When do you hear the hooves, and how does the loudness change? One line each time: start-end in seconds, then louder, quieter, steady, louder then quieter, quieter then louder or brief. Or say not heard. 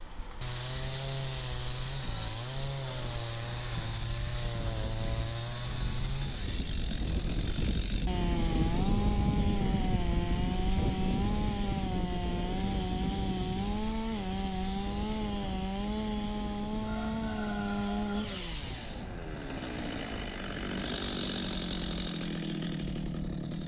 not heard.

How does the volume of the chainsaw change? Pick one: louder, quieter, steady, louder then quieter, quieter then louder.
steady.